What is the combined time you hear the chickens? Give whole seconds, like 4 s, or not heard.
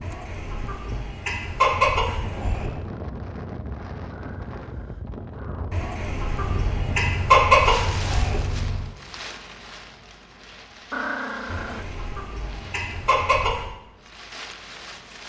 8 s.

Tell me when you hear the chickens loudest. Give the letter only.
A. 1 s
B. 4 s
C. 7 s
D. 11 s
C.